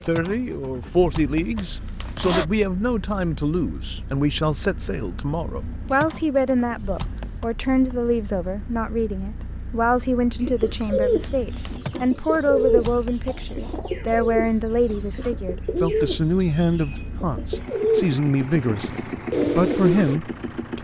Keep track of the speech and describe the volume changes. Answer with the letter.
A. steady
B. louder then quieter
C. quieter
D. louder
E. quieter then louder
A.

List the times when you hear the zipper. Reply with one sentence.
The zipper can be heard from 1.6 to 2.5 s and from 11.2 to 11.8 s.